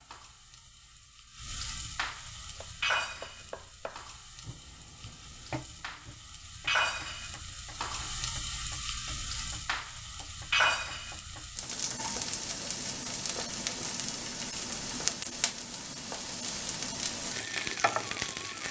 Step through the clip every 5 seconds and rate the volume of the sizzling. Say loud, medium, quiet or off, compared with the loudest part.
medium, loud, loud, loud.